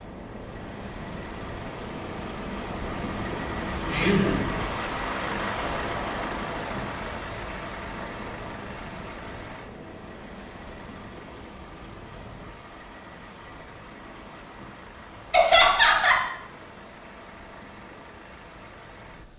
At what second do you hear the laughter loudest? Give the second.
16 s.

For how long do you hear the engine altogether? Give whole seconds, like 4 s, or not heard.
19 s.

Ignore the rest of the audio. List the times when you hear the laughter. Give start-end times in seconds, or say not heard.
3.9-4.5, 15.3-16.2.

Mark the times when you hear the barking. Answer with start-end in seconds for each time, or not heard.
not heard.